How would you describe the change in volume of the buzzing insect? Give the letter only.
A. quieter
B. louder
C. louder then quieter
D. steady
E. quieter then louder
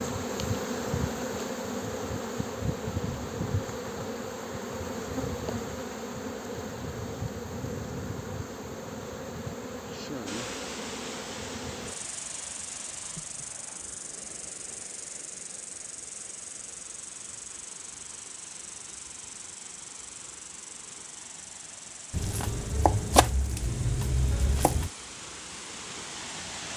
A.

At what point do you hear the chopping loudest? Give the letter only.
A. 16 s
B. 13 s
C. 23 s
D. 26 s
C.